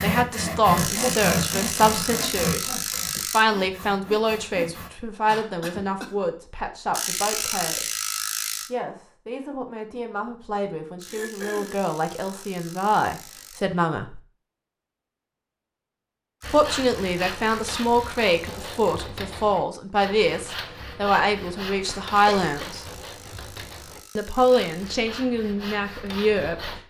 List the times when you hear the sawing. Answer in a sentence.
The sawing can be heard from 0.0 to 4.9 s and from 16.4 to 26.8 s.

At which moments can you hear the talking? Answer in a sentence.
You can hear the talking from 0.0 to 7.9 s, from 8.7 to 14.2 s, from 16.5 to 22.9 s and from 24.1 to 26.8 s.